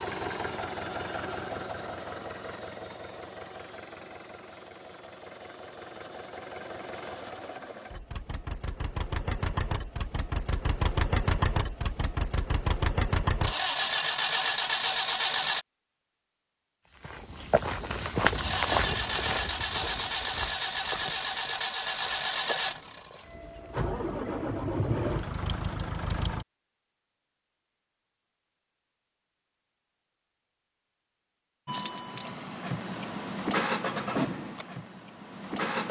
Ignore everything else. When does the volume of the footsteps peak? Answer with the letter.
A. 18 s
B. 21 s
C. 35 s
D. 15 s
A.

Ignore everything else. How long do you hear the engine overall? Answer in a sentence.
The engine can be heard for 28 seconds in total.